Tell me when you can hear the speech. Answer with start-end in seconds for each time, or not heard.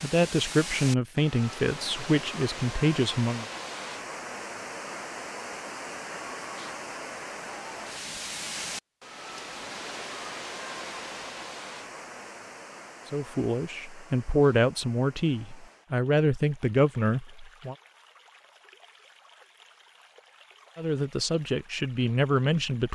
0.0-3.5, 13.1-17.8, 20.8-22.9.